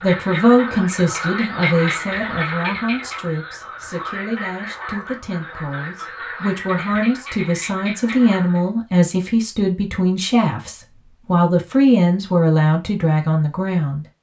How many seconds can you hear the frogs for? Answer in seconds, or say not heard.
9 s.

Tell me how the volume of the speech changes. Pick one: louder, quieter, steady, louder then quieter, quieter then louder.
quieter then louder.